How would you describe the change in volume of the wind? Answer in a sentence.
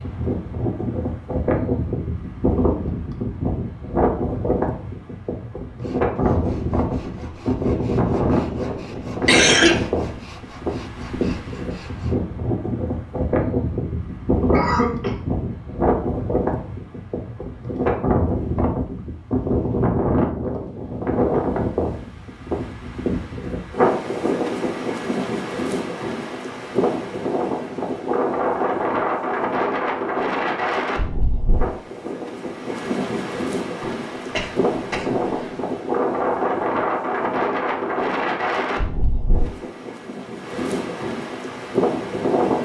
The volume of the wind stays about the same.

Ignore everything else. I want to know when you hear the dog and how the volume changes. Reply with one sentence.
The dog can't be heard in this clip.